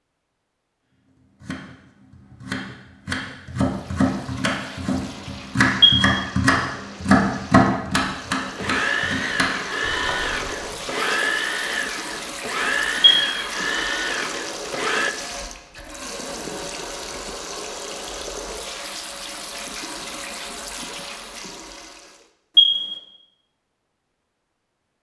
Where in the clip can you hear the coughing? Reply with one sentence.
The coughing can't be heard in this clip.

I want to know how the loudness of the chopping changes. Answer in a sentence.
The loudness of the chopping goes up, then down.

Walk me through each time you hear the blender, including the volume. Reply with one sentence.
The blender can be heard from 8.4 to 15.2 s, at a steady volume.